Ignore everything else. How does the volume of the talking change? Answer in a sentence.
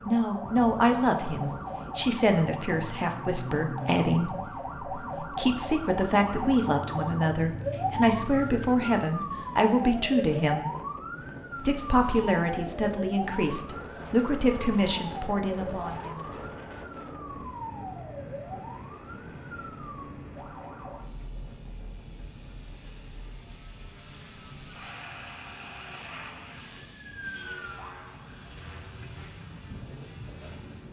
The volume of the talking stays about the same.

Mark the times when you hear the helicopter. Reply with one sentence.
You can hear the helicopter from 17.2 to 30.8 s.